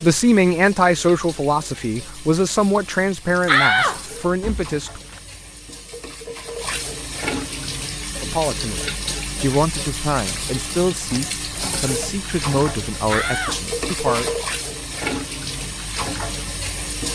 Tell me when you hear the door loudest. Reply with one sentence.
The volume of the door peaks at 4 seconds.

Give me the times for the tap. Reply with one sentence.
The tap can be heard from 0.0 to 17.1 s.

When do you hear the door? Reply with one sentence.
You can hear the door from 3.5 to 5.2 s and from 13.1 to 13.6 s.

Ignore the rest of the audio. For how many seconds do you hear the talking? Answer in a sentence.
The talking can be heard for 11 seconds in total.